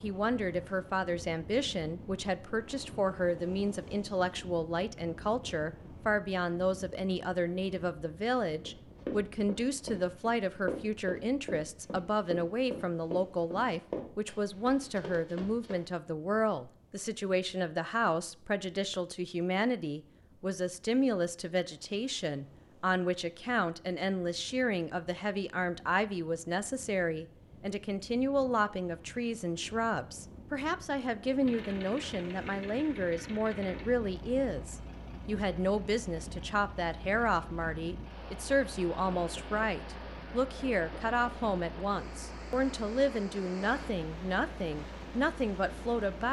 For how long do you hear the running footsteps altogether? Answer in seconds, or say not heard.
7 s.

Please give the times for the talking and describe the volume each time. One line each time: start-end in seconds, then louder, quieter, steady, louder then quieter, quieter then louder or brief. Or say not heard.
0.0-46.2 steady.